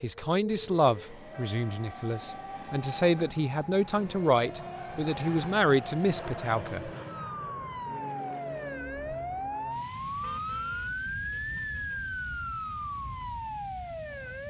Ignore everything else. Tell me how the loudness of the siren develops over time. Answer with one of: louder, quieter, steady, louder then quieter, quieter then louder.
louder.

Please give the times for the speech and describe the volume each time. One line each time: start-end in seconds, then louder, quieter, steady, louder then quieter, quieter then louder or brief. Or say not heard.
0.0-6.9 quieter then louder.